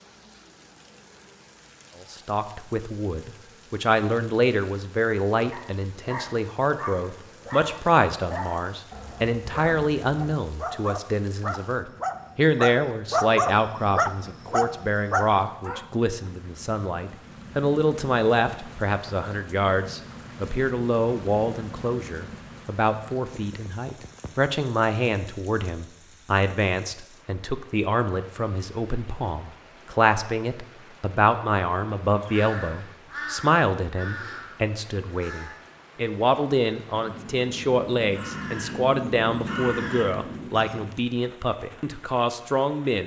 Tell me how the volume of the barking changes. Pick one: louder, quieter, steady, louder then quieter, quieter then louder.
louder.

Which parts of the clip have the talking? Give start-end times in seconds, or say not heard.
2.0-43.0.